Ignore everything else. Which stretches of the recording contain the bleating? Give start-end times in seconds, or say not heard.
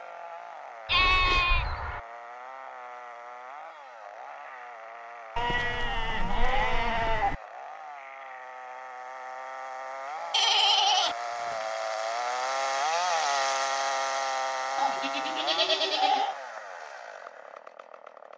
0.8-2.0, 5.3-7.3, 10.3-11.7, 14.8-16.4.